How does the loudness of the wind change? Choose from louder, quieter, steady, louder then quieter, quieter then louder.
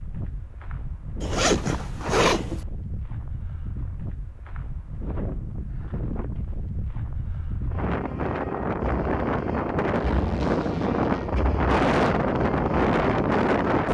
louder.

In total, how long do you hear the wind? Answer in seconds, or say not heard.
14 s.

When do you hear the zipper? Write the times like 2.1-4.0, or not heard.
1.2-2.6, 9.9-11.3.